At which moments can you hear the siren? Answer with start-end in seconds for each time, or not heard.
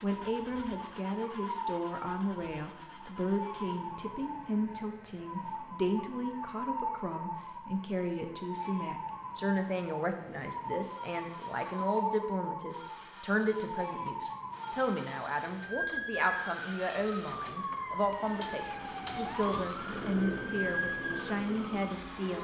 0.0-22.4.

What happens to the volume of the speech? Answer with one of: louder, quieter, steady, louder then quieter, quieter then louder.
steady.